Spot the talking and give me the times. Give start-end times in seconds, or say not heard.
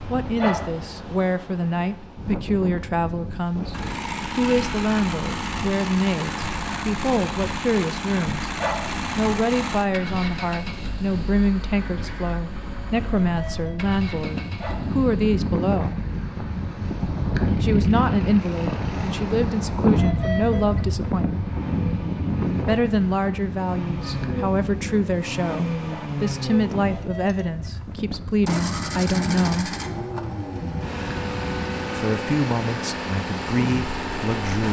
0.1-8.5, 9.2-16.1, 17.6-21.5, 22.6-29.8, 31.9-34.6.